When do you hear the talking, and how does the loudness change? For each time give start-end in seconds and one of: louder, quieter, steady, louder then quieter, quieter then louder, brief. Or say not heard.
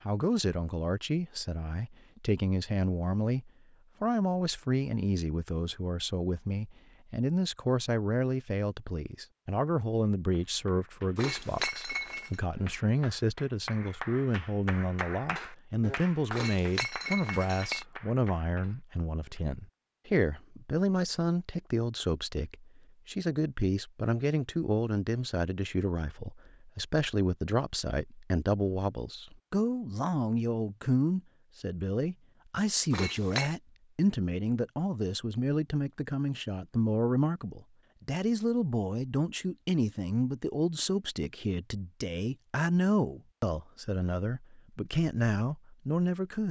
0.1-46.4 steady.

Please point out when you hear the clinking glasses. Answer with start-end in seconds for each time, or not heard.
11.2-12.3, 16.3-17.9, 32.9-33.5.